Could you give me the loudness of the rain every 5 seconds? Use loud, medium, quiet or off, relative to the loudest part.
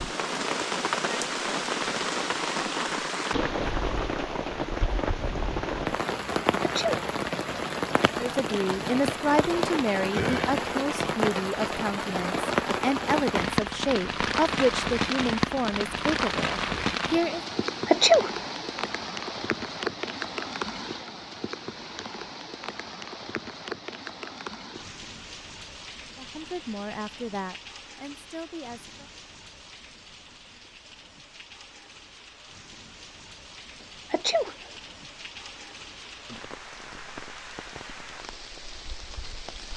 loud, loud, loud, loud, medium, quiet, quiet, quiet.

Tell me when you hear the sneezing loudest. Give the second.
18 s.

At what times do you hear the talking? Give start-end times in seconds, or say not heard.
8.1-17.4, 26.1-29.1.